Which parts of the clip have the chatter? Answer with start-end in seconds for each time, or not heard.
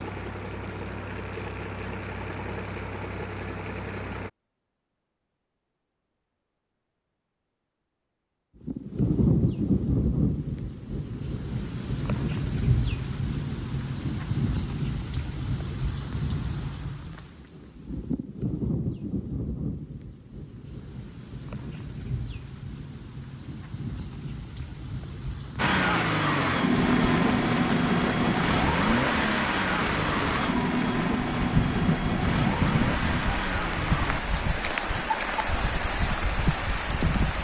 not heard.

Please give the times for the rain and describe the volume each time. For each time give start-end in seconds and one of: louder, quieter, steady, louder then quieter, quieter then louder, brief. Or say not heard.
8.6-37.3 quieter then louder.